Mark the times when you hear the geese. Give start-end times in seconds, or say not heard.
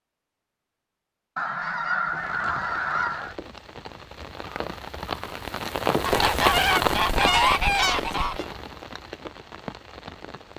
1.4-3.4, 6.0-8.4.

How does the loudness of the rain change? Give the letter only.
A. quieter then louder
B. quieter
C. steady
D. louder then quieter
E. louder
D.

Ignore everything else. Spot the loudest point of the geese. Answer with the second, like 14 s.
7 s.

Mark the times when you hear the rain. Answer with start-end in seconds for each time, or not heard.
2.1-10.5.